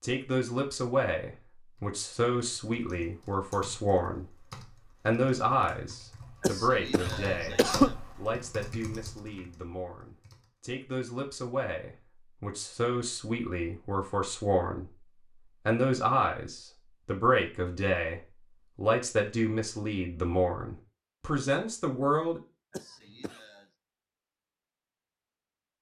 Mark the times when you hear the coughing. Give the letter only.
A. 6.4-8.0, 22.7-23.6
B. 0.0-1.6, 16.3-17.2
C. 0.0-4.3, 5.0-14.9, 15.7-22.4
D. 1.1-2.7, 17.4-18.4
A.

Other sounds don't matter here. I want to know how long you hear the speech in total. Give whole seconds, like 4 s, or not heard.
21 s.